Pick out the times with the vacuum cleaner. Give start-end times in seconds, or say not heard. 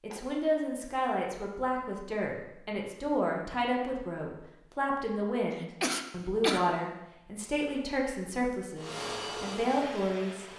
8.8-10.5.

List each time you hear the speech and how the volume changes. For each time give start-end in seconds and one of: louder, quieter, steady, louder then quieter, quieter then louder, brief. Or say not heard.
0.0-10.4 steady.